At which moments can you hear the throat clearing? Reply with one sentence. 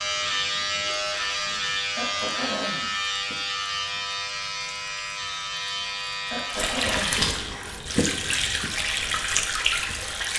The throat clearing can be heard from 1.9 to 2.9 s and from 6.3 to 7.2 s.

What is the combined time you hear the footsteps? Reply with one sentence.
You can't hear the footsteps here.